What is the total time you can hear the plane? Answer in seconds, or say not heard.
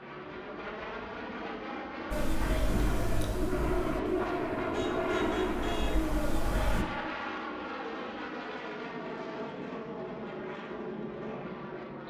12 s.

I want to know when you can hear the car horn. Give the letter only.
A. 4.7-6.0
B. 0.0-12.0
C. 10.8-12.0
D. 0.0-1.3
A.